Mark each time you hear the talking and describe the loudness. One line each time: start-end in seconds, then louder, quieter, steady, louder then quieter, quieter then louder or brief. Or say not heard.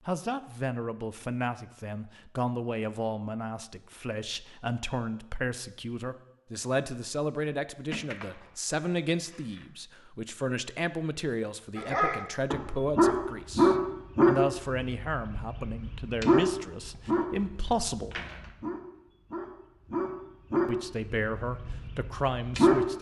0.1-18.2 steady
20.6-22.9 brief.